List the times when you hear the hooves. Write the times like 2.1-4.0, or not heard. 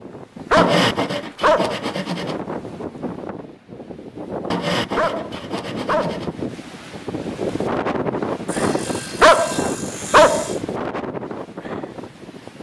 not heard.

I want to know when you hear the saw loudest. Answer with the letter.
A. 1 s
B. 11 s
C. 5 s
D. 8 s
A.